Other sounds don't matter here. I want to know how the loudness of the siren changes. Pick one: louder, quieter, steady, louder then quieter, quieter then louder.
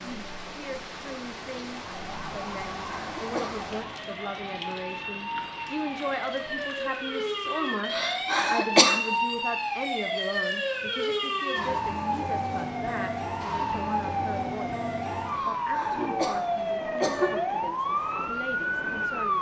louder.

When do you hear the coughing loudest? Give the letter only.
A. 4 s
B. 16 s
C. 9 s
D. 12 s
C.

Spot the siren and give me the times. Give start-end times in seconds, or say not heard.
1.8-19.3.